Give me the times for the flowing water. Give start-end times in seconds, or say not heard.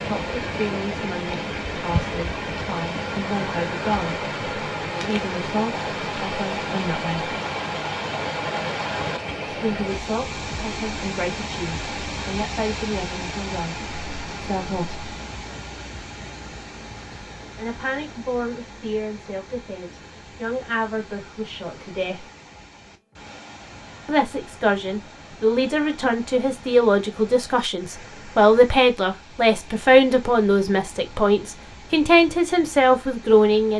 0.0-33.7.